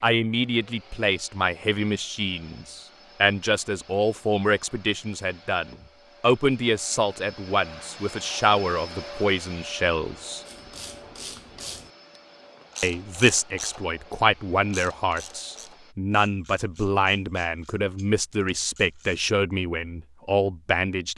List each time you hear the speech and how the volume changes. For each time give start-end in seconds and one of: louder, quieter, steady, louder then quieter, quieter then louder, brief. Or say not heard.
0.0-10.4 steady
12.8-21.1 steady.